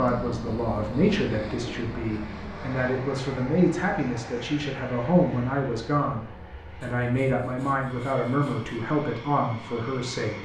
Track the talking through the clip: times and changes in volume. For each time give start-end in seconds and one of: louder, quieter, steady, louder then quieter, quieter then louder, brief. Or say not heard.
0.0-10.4 steady.